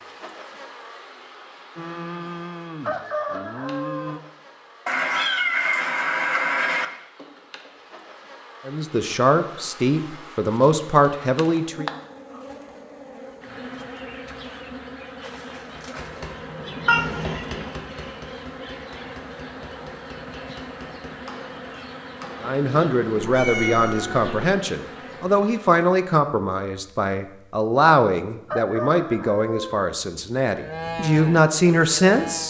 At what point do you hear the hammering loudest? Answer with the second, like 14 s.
17 s.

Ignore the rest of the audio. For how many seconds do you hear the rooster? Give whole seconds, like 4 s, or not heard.
3 s.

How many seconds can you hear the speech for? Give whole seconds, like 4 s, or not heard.
13 s.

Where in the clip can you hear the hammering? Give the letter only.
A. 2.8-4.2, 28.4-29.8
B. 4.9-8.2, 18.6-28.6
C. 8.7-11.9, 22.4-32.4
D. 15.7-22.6
D.